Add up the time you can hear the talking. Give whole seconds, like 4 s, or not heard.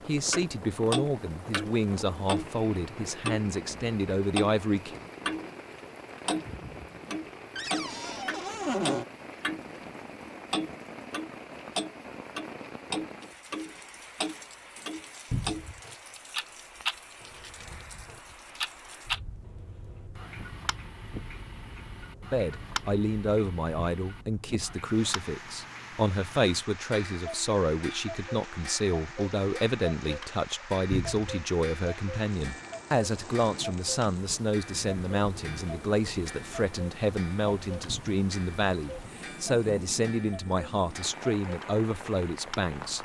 26 s.